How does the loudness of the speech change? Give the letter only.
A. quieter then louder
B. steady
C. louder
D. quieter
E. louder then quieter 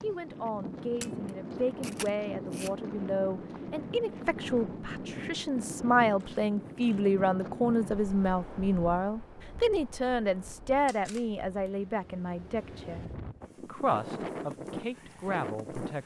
E.